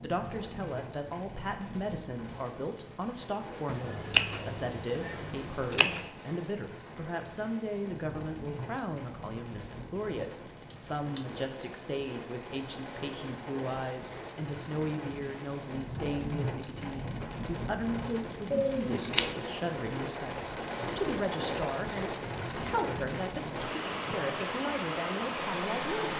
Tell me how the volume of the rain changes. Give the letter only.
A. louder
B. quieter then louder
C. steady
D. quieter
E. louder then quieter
A.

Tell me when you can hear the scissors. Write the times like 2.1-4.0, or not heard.
3.6-6.0, 10.7-11.2, 18.5-19.4.